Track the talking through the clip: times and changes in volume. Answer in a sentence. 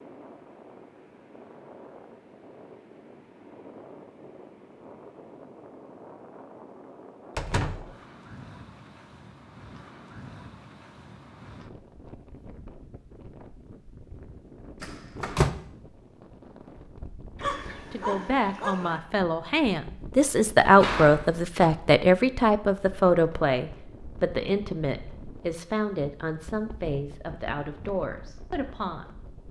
You can hear the talking from 17.9 to 29.4 s, getting louder then quieter.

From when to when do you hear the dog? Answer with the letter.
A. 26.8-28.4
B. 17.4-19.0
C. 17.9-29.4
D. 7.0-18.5
B.